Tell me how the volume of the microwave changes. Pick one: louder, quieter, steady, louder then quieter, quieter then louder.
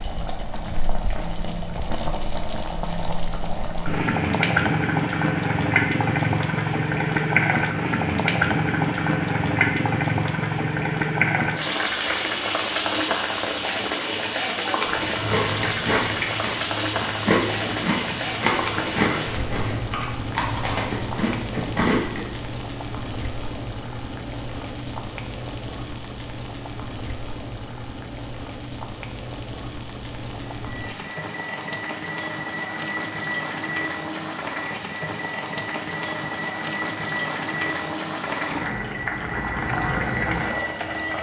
steady.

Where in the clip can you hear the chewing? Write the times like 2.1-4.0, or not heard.
14.8-22.3.